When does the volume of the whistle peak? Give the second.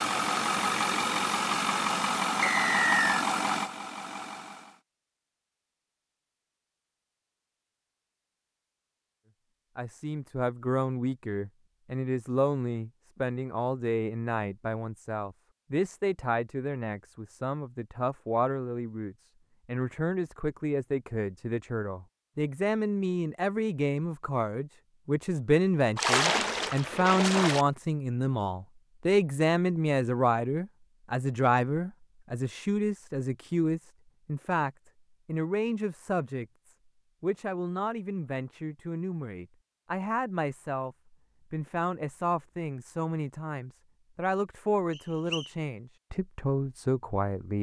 3 s.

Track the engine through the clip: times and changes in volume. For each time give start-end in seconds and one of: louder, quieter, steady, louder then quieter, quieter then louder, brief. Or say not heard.
0.0-4.8 quieter.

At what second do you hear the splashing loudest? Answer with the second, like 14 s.
26 s.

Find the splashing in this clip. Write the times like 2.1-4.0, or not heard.
25.9-27.6.